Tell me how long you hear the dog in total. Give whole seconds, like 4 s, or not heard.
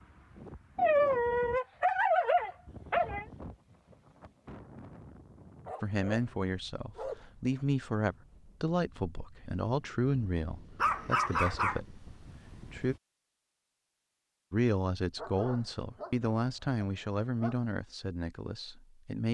8 s.